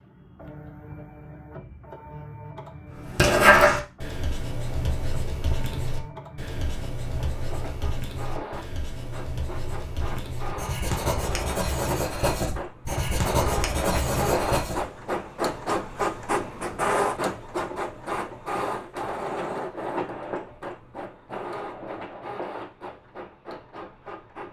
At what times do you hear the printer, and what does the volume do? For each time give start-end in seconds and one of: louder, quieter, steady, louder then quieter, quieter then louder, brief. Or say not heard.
0.0-24.4 louder then quieter.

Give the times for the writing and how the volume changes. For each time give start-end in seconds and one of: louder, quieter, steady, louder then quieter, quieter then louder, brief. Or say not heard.
3.0-14.8 quieter then louder.